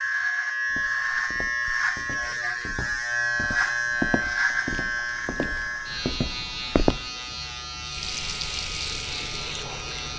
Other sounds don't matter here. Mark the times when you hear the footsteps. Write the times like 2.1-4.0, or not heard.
0.7-7.1.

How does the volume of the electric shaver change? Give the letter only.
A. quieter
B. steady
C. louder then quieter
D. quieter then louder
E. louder
A.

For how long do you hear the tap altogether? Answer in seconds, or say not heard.
2 s.